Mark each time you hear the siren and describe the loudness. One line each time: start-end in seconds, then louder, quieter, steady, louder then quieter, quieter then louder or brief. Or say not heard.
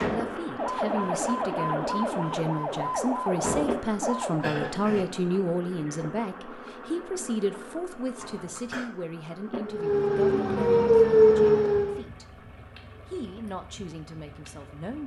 0.0-4.5 steady
9.7-12.0 brief.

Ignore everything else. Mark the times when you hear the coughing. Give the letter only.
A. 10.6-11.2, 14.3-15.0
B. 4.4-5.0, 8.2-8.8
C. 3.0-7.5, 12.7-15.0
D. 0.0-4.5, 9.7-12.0
B.